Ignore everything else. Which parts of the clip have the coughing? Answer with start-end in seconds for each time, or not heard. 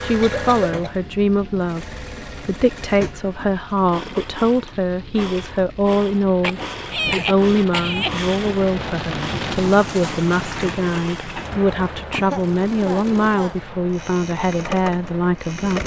0.2-0.9, 6.4-8.1, 12.1-13.6.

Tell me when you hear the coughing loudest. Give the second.
7 s.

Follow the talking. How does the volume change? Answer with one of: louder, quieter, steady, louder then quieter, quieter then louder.
steady.